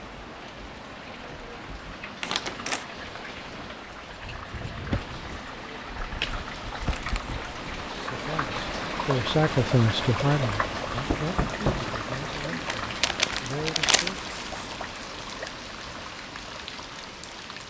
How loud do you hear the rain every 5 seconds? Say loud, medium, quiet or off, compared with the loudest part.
medium, loud, loud, medium.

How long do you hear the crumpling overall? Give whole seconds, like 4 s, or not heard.
4 s.